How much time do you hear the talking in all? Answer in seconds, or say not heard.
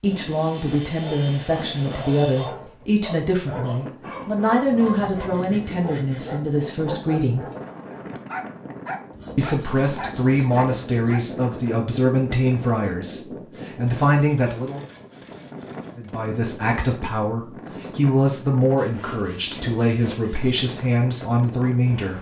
19 s.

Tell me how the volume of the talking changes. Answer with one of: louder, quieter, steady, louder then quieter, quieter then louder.
steady.